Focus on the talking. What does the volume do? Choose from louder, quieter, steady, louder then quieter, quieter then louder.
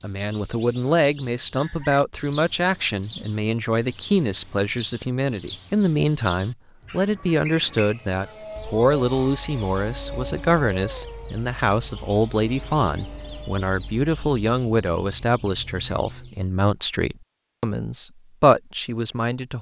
steady.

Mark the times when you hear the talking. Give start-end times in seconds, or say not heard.
0.0-19.5.